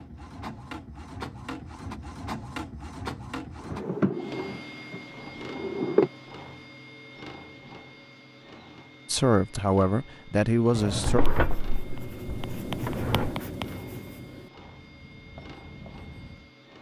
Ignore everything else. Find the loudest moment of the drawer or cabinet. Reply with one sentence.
The volume of the drawer or cabinet peaks at 6 seconds.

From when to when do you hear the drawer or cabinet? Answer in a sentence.
The drawer or cabinet can be heard from 3.6 to 6.1 s and from 10.8 to 13.3 s.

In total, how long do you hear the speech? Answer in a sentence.
You can hear the speech for 2 seconds altogether.